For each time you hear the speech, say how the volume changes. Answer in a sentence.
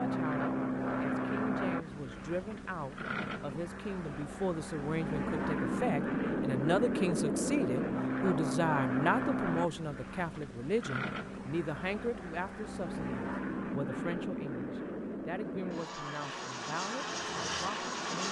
You can hear the speech from 0.0 to 18.2 s, getting louder then quieter.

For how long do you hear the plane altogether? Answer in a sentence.
The plane can be heard for 18 seconds in total.